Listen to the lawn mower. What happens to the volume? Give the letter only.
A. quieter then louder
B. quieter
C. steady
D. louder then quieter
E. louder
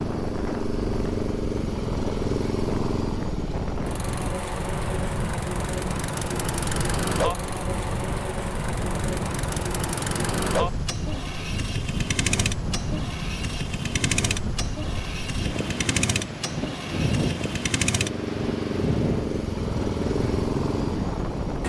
C.